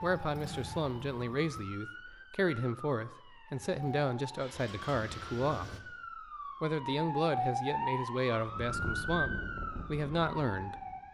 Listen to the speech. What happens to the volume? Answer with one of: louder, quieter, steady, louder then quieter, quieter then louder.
steady.